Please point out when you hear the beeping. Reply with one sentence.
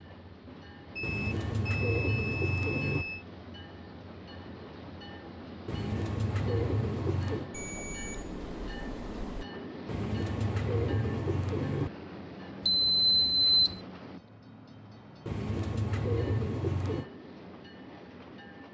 The beeping can be heard from 0.9 to 3.2 s, from 7.5 to 9.4 s and from 12.7 to 13.8 s.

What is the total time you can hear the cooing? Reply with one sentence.
You can hear the cooing for 8 seconds altogether.